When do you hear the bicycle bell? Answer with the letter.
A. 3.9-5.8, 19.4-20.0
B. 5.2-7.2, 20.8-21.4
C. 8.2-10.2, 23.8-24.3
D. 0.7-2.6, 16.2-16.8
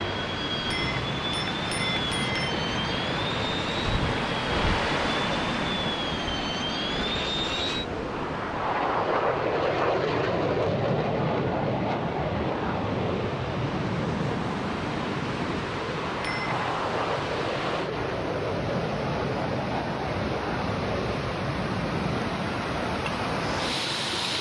D.